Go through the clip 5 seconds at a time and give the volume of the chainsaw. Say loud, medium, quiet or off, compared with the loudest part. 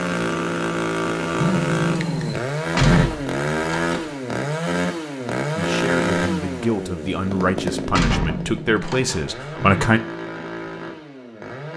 loud, loud, medium.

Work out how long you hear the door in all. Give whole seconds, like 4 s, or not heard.
3 s.